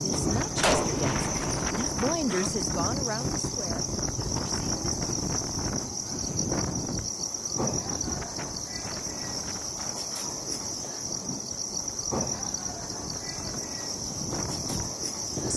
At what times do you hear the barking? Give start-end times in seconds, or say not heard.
not heard.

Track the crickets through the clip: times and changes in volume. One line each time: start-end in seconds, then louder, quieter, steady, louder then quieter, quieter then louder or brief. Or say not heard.
0.0-15.5 steady.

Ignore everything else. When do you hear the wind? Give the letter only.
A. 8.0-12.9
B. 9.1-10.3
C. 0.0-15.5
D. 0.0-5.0
C.